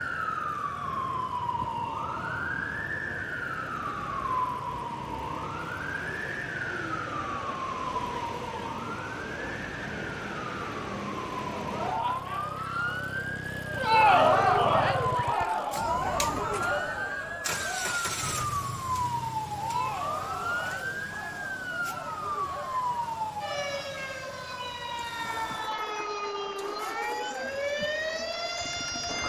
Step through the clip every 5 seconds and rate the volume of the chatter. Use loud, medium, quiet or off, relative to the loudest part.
off, off, loud, medium, quiet, quiet.